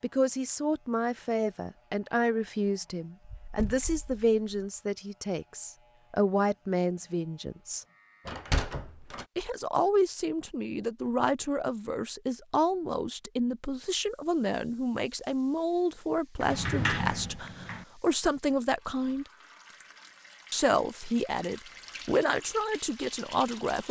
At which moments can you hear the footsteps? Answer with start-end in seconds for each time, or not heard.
not heard.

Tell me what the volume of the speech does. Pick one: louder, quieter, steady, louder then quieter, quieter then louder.
steady.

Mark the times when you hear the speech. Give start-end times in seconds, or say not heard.
0.0-7.8, 9.3-19.2, 20.5-23.8.